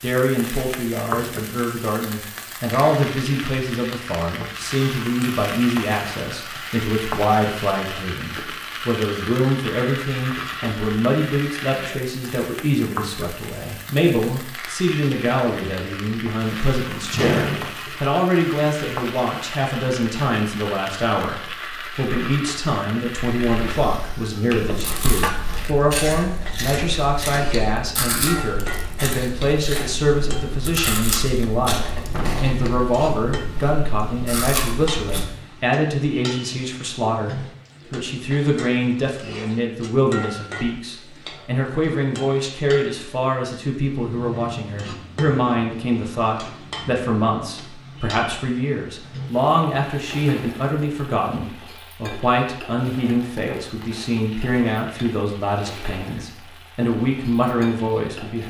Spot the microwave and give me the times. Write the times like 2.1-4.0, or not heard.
not heard.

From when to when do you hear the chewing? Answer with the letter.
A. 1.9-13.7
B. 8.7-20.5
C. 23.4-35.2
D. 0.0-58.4
C.